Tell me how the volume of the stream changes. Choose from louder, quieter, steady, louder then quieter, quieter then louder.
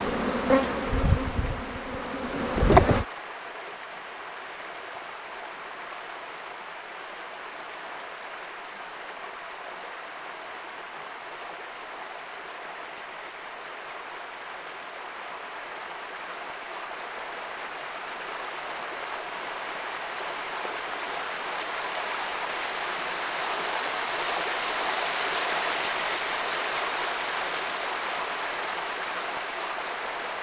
louder.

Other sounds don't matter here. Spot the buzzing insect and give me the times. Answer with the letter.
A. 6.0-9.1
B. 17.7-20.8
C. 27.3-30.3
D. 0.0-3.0
D.